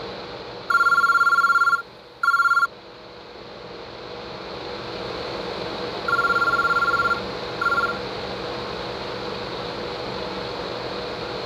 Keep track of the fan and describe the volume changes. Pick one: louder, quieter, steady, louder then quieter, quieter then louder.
louder.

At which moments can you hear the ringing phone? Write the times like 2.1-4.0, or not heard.
0.7-2.7, 6.0-8.0.